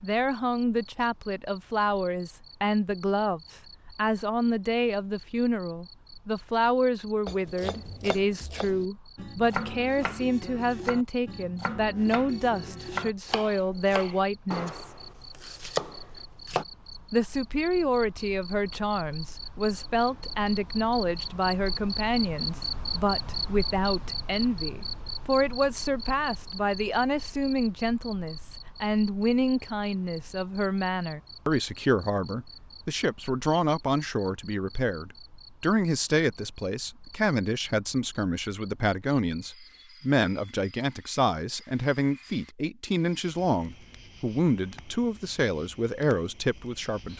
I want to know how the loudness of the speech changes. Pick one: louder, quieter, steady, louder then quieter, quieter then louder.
steady.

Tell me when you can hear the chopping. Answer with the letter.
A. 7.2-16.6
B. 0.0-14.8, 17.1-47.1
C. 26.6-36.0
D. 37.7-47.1
A.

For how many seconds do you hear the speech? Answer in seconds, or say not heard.
45 s.